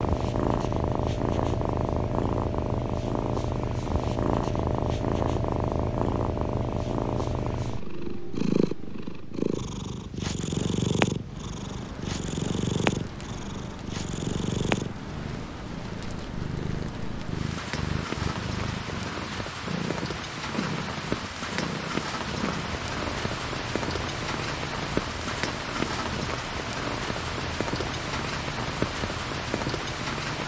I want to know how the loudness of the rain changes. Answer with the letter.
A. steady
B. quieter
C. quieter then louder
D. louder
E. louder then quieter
D.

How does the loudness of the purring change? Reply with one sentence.
The loudness of the purring goes down.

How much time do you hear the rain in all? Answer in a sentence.
You can hear the rain for 19 seconds altogether.